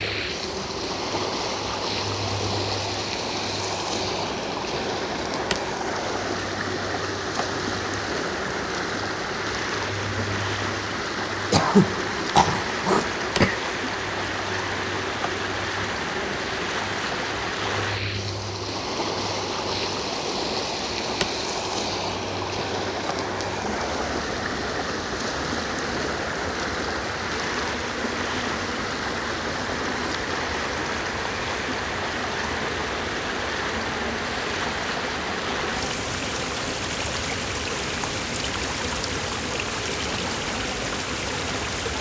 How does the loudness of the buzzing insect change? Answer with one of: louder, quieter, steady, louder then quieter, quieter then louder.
steady.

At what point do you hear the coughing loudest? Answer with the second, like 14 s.
12 s.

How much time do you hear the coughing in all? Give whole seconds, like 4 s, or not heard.
2 s.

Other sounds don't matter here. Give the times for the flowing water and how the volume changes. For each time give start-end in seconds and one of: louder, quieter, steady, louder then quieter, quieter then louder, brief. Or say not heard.
0.0-41.9 steady.